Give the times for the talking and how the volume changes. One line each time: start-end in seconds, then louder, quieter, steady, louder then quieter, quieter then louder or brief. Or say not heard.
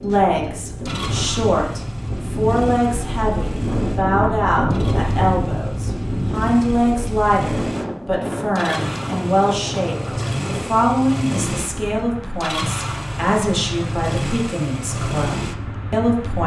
0.0-16.4 steady.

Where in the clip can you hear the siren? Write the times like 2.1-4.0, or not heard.
not heard.